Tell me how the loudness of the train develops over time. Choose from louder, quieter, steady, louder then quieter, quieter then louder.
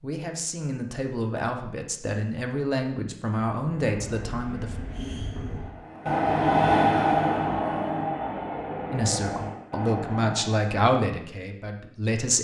louder then quieter.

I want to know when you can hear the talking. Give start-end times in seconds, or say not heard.
0.0-4.8, 8.9-12.4.